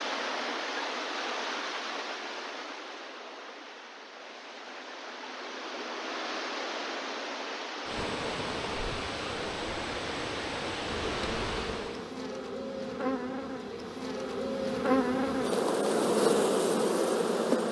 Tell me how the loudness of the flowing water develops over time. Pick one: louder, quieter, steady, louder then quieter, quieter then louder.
quieter then louder.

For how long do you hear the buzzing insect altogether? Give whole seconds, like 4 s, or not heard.
7 s.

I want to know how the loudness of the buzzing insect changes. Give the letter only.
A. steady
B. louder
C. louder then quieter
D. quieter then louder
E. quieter
B.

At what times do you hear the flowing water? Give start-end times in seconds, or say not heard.
0.0-12.2.